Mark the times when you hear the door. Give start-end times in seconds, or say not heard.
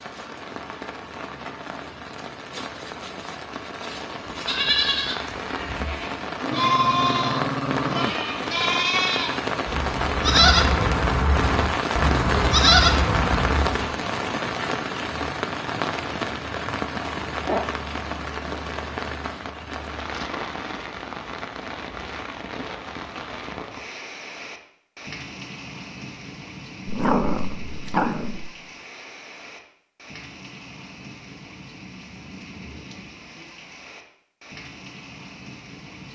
not heard.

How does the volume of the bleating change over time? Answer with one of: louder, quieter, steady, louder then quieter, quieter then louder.
louder.